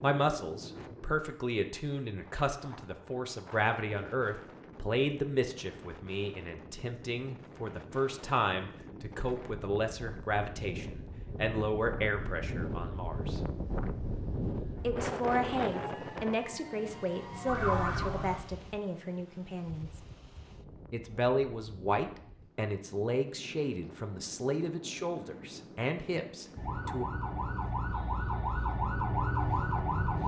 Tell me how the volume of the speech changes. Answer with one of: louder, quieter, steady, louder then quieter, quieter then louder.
steady.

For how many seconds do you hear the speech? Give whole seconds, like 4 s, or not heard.
25 s.